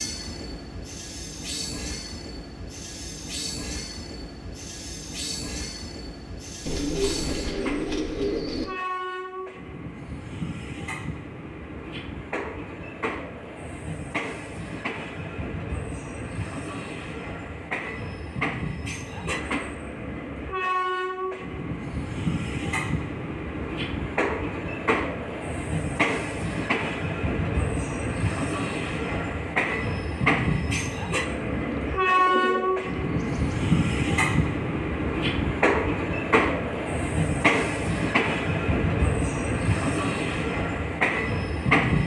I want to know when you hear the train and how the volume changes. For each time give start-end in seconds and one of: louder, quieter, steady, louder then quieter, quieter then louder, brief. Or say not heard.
0.0-42.0 louder.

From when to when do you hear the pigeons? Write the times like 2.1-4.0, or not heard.
6.7-8.7, 31.6-33.6.